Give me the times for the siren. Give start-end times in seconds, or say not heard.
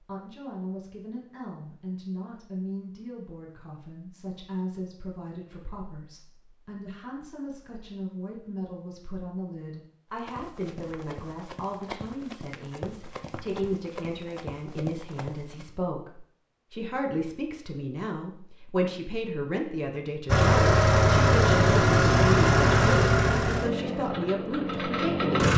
not heard.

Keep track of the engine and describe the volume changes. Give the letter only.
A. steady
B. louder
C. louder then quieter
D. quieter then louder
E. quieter
E.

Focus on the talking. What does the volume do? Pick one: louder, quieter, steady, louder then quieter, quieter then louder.
louder.